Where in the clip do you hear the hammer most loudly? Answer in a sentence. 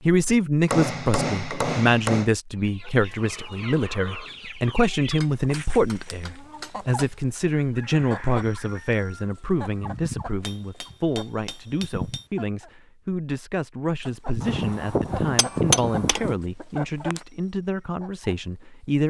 The volume of the hammer peaks at 16 seconds.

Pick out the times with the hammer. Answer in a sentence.
You can hear the hammer from 0.7 to 2.3 s, from 5.2 to 7.4 s, from 10.4 to 12.2 s and from 14.4 to 16.4 s.